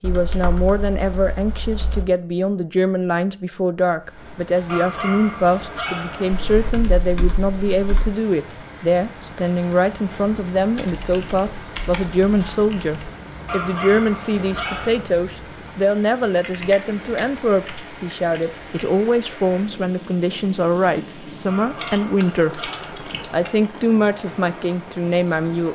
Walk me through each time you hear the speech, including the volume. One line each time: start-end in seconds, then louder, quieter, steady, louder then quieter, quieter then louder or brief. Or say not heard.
0.0-25.7 steady.